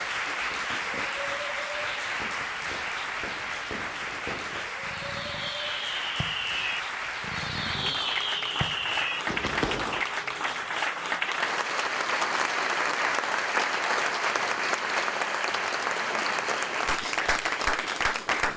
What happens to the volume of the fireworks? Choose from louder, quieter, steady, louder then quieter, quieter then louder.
louder.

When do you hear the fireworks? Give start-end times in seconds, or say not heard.
0.4-10.1.